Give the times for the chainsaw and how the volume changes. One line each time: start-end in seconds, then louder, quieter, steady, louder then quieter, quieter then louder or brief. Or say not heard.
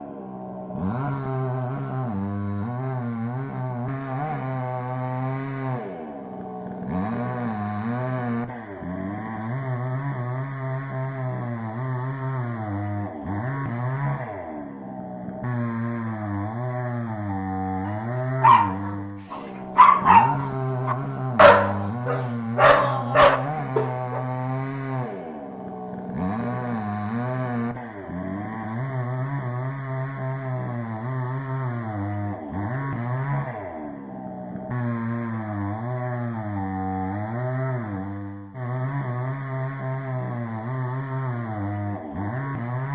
0.0-42.9 steady.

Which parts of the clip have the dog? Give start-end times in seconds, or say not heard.
18.4-24.2.